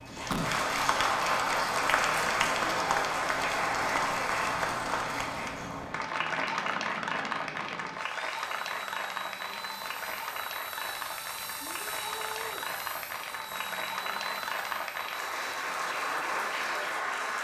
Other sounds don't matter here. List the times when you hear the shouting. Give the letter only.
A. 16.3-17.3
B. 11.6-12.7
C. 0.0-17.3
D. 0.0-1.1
B.